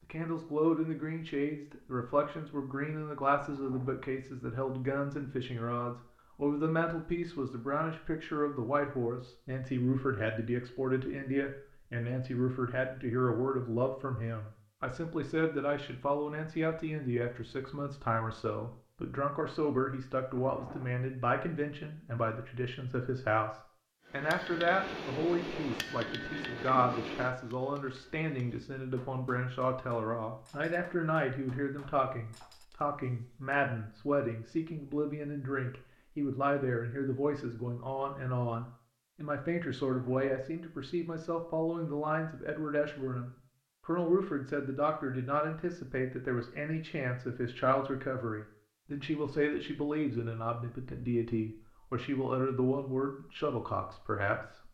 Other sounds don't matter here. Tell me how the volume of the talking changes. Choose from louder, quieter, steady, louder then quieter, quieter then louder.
steady.